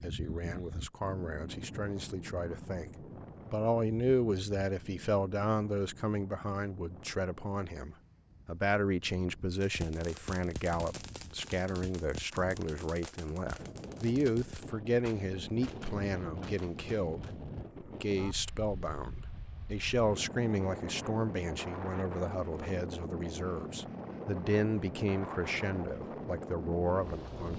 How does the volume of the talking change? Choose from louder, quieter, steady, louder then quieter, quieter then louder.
steady.